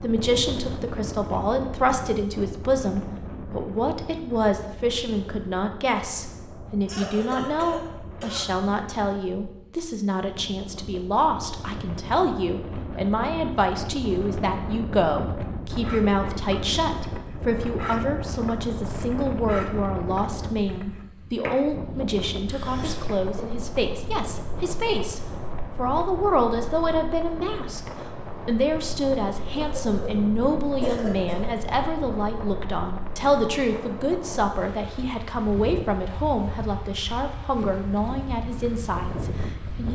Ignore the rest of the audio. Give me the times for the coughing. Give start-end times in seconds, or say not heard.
6.8-8.4, 22.4-23.6, 29.5-31.6.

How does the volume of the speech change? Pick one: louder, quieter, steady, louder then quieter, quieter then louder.
steady.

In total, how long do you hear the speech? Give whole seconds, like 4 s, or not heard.
40 s.